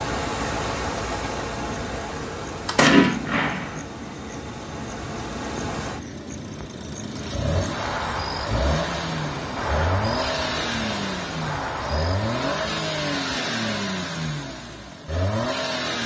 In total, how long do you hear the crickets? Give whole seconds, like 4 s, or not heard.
13 s.